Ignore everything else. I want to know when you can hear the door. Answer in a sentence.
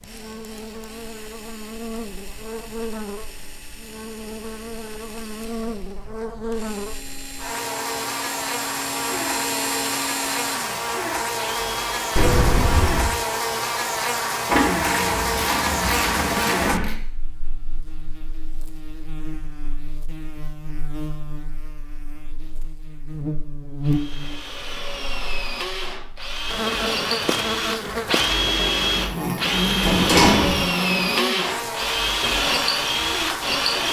The door can be heard from 12.2 to 13.2 s and from 29.8 to 30.6 s.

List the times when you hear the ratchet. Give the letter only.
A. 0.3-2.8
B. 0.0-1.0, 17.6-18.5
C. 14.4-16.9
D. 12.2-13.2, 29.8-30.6
C.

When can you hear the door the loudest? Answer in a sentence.
The loudest moment of the door is at 30 seconds.